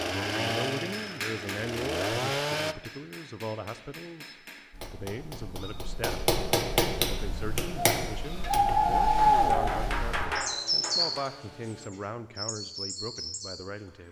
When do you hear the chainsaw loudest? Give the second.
2 s.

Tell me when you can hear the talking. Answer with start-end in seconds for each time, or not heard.
0.0-6.2, 7.0-14.0.